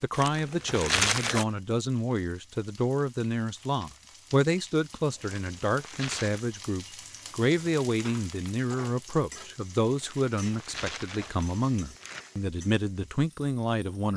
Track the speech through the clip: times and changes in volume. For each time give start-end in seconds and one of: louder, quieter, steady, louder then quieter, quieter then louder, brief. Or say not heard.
0.0-14.1 steady.